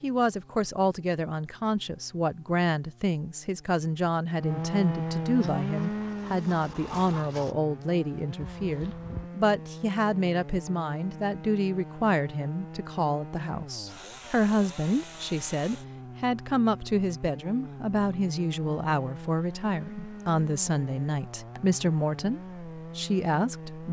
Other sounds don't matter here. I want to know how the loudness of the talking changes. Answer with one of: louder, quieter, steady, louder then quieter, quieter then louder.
steady.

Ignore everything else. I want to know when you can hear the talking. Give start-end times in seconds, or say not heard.
0.0-23.8.